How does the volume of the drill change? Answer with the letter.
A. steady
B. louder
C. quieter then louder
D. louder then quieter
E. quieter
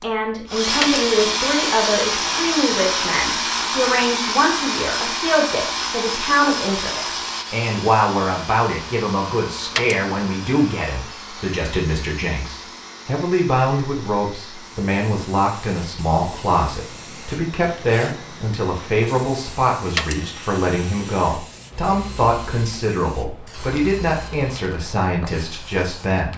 E.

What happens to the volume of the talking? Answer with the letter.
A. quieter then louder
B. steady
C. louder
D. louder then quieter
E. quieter
B.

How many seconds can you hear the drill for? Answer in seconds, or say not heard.
25 s.